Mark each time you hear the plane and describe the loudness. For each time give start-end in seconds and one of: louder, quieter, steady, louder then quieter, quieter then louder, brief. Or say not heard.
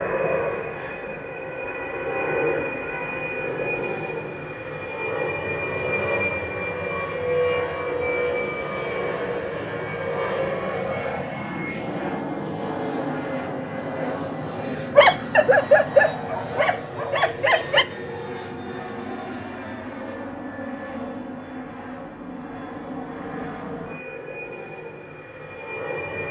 0.0-26.2 quieter.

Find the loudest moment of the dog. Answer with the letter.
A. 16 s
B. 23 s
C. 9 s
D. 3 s
A.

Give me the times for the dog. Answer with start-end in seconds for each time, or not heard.
14.9-17.9.